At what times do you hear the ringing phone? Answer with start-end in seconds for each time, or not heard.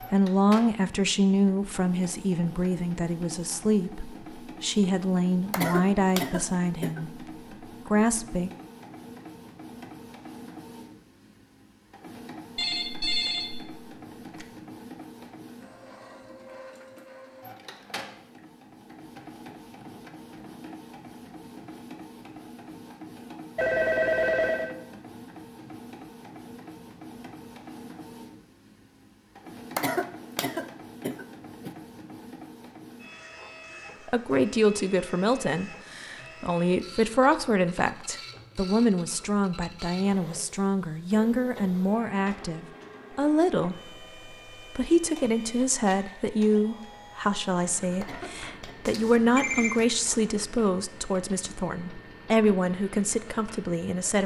12.6-14.4, 23.6-24.8, 48.9-49.9.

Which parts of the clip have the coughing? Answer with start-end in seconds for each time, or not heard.
5.5-7.0, 29.8-31.7, 48.0-48.8.